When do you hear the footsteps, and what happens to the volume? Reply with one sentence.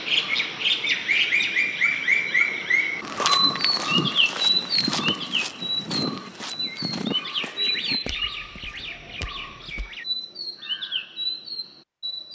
You can hear the footsteps from 3.0 to 9.9 s, getting quieter.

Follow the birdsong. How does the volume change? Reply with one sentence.
The loudness of the birdsong goes down.